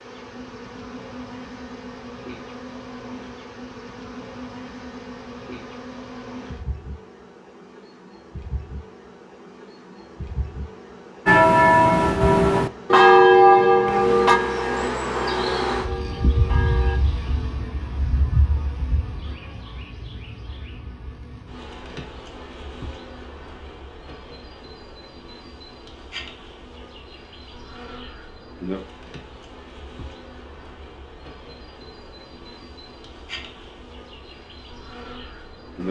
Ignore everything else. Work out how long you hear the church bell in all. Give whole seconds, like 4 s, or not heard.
6 s.